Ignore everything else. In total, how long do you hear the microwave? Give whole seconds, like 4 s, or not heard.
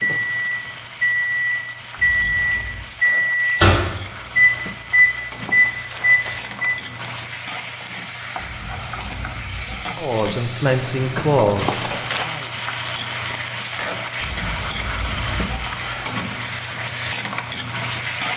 7 s.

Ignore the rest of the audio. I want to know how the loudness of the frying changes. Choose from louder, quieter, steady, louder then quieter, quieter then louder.
louder.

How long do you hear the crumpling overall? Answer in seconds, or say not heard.
3 s.